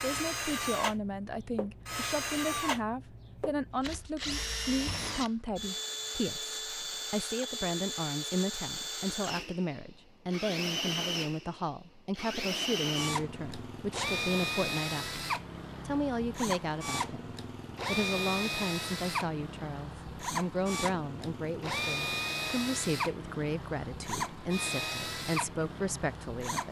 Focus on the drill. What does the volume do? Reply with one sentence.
The loudness of the drill stays about the same.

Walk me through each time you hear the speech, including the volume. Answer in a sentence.
The speech can be heard from 0.0 to 26.6 s, at a steady volume.